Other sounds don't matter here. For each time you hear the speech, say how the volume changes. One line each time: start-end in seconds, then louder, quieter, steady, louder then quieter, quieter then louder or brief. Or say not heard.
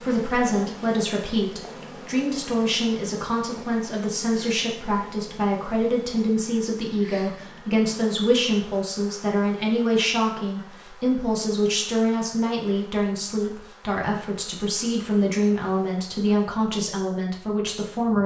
0.0-18.2 steady.